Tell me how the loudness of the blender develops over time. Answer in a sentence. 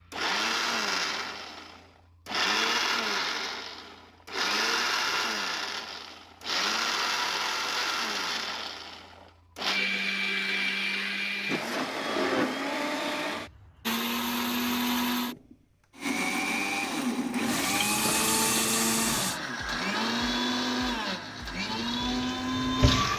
The loudness of the blender stays about the same.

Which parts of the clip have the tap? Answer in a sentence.
You can hear the tap from 17.4 to 19.4 s and from 21.6 to 23.1 s.